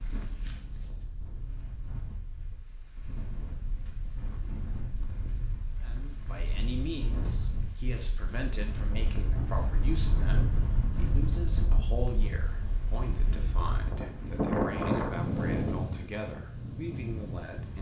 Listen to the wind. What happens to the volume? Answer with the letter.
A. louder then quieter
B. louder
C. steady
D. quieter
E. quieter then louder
B.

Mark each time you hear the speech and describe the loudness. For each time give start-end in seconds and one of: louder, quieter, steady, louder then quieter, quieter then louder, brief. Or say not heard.
5.8-17.7 steady.